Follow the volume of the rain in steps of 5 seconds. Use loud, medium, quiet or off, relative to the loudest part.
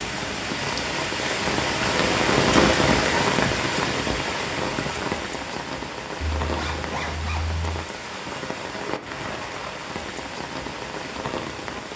loud, medium, medium.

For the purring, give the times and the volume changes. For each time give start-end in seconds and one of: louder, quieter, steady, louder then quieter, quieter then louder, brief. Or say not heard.
not heard.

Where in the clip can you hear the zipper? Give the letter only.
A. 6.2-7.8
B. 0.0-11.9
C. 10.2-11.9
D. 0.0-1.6
A.